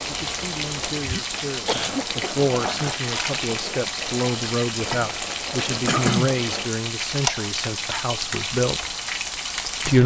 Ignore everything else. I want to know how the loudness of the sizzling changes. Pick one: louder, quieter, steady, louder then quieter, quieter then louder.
steady.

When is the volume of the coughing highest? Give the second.
6 s.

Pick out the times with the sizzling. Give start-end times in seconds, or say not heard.
0.0-10.0.